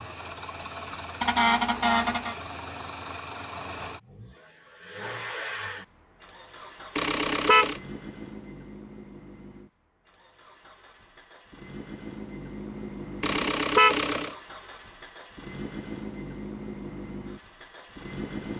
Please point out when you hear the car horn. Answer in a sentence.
You can hear the car horn from 1.2 to 2.4 s, from 7.0 to 7.8 s and from 13.2 to 14.3 s.